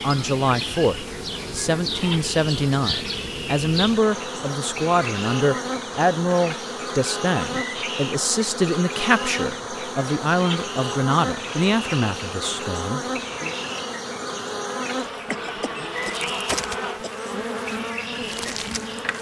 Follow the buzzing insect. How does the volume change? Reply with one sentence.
The volume of the buzzing insect stays about the same.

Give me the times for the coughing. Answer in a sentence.
You can hear the coughing from 15.2 to 17.3 s.